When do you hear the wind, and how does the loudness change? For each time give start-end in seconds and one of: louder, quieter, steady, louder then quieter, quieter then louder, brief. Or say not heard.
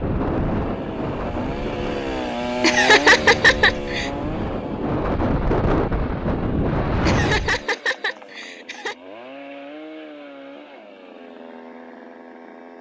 0.0-7.7 quieter then louder.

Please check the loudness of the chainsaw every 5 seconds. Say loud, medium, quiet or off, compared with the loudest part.
loud, medium, quiet.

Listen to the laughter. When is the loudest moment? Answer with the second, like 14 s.
3 s.